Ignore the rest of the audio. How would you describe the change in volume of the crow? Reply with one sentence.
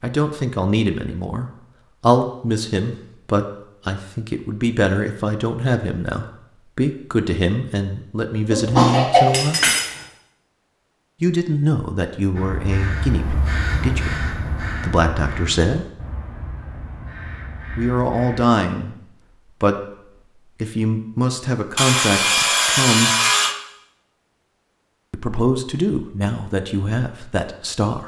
The loudness of the crow goes down.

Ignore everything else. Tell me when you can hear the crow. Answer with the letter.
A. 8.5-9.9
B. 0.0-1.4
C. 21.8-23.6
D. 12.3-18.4
D.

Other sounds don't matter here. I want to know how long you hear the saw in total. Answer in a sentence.
You can hear the saw for 2 seconds altogether.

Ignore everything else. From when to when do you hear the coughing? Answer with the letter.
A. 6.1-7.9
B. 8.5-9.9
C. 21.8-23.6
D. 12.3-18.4
B.